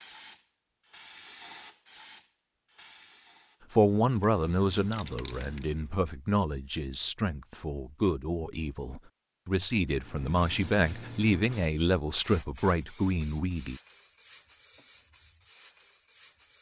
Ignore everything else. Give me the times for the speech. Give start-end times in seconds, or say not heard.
3.7-13.8.